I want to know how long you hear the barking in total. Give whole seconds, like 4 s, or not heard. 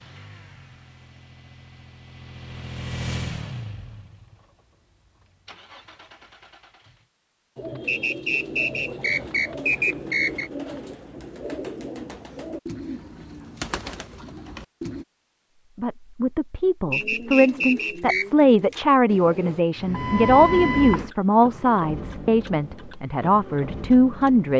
not heard.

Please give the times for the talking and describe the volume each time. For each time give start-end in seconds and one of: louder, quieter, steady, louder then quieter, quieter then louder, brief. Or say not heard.
15.8-24.5 steady.